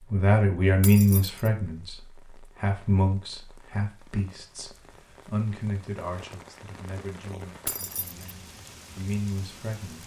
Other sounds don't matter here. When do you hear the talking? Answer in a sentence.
The talking can be heard from 0.0 to 10.0 s.